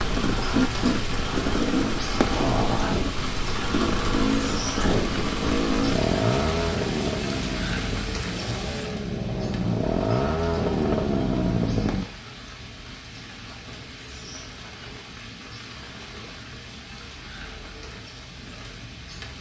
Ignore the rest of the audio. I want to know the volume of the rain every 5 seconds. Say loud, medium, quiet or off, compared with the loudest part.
loud, loud, medium, medium.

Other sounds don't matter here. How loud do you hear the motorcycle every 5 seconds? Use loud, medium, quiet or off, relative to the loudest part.
loud, loud, loud, off.